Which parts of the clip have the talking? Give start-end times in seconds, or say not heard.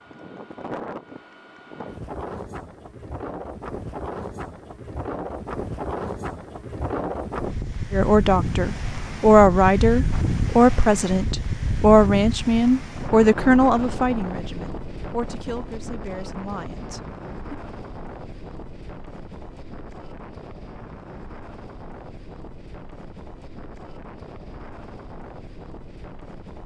7.9-17.6.